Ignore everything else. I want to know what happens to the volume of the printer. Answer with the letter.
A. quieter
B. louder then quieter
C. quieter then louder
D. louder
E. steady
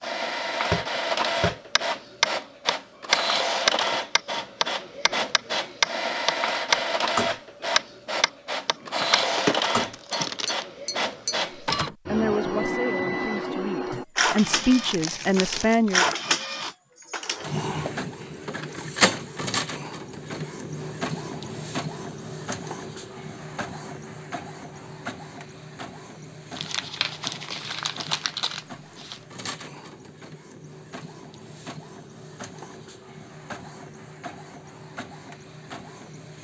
A.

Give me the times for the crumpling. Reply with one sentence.
You can hear the crumpling from 8.7 to 10.7 s, from 14.2 to 16.1 s and from 26.6 to 29.2 s.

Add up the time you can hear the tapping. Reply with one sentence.
The tapping can be heard for 11 seconds in total.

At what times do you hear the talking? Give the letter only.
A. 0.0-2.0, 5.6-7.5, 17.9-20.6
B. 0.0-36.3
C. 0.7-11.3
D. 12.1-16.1
D.